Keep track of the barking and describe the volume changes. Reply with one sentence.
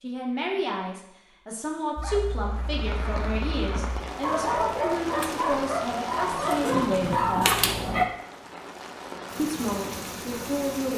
The loudness of the barking goes up.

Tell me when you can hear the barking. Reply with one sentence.
The barking can be heard from 1.9 to 8.1 s.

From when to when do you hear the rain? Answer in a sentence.
The rain can be heard from 2.4 to 10.9 s.